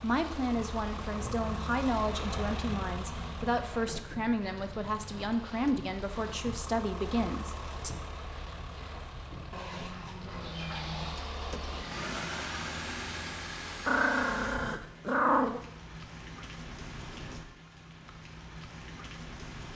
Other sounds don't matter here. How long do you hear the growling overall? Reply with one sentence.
You can hear the growling for 6 seconds altogether.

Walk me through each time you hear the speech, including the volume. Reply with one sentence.
You can hear the speech from 0.0 to 7.9 s, at a steady volume.